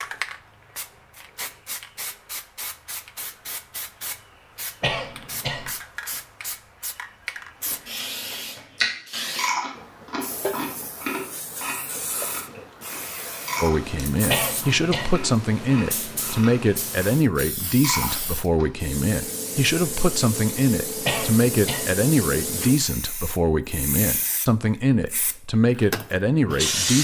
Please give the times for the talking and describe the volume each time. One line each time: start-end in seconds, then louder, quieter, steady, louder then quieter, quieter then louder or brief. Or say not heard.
13.6-26.9 steady.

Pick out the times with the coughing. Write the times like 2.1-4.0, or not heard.
4.8-5.7, 14.2-15.2, 21.1-21.9.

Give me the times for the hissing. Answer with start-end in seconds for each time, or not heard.
0.0-26.9.